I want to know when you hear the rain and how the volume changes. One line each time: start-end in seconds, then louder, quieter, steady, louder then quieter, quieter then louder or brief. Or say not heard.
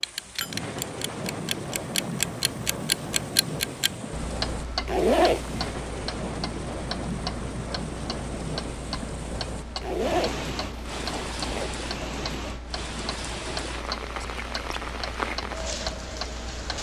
0.0-16.7 steady.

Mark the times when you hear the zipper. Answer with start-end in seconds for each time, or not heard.
4.8-5.7, 9.8-11.7.